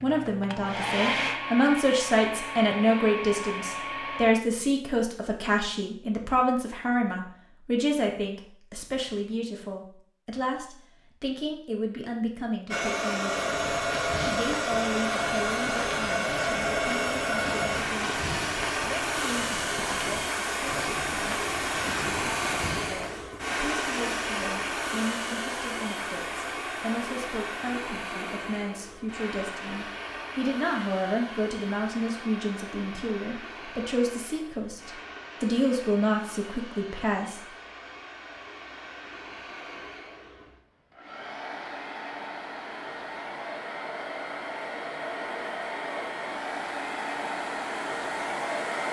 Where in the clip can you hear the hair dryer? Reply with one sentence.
You can hear the hair dryer from 0.0 to 4.3 s and from 12.7 to 48.8 s.